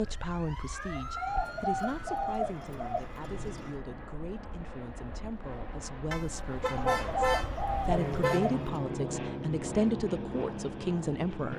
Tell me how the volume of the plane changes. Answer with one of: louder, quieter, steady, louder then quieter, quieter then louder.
louder.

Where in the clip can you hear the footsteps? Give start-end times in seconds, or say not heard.
not heard.